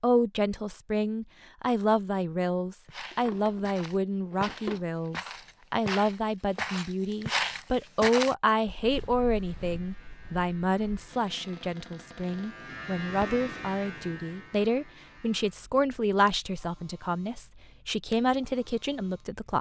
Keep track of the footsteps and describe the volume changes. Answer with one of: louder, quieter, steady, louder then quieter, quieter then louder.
louder then quieter.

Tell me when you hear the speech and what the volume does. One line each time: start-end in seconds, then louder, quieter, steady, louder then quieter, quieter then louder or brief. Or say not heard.
0.0-19.5 steady.